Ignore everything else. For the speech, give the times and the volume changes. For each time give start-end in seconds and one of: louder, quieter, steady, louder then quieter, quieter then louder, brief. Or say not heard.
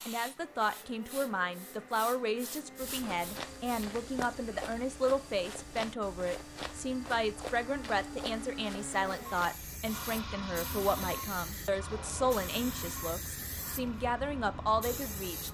0.1-15.4 steady.